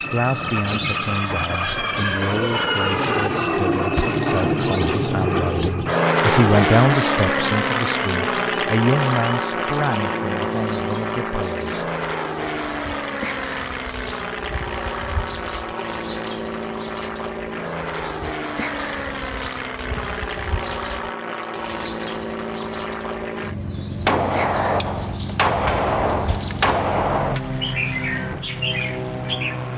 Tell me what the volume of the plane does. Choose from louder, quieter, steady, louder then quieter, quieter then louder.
quieter.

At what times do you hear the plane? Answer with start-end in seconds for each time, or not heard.
0.0-29.7.